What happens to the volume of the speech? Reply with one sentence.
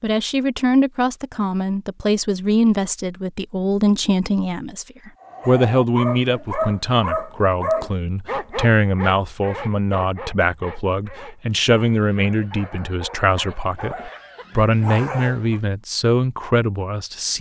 The loudness of the speech stays about the same.